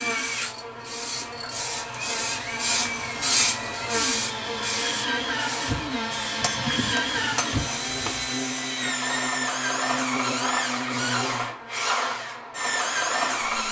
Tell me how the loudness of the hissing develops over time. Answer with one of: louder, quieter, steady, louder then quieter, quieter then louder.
louder then quieter.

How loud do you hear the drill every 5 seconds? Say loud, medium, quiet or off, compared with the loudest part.
medium, loud, loud.